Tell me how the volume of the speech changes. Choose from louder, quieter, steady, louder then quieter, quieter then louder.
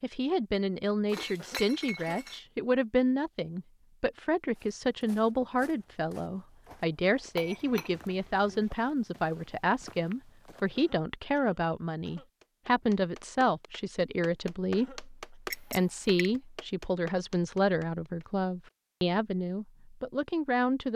steady.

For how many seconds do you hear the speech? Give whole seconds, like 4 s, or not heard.
21 s.